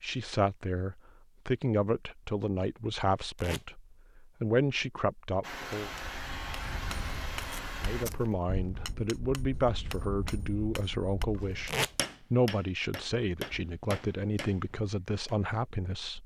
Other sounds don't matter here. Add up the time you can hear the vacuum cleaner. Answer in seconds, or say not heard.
3 s.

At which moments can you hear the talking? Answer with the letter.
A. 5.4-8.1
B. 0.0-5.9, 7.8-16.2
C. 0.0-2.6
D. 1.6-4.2
B.